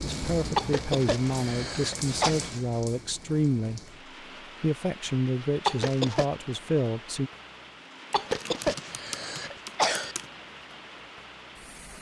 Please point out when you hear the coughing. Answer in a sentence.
You can hear the coughing from 0.6 to 2.4 s, from 5.7 to 6.2 s and from 8.1 to 10.2 s.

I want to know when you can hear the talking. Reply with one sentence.
You can hear the talking from 0.0 to 4.0 s and from 4.6 to 7.3 s.